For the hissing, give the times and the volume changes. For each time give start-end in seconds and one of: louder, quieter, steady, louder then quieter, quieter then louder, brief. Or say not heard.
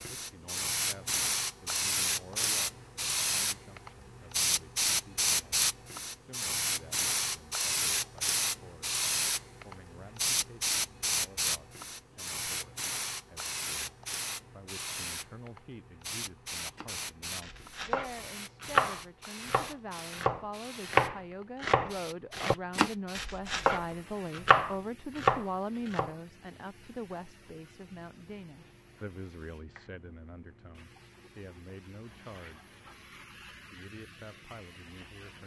0.0-35.4 quieter.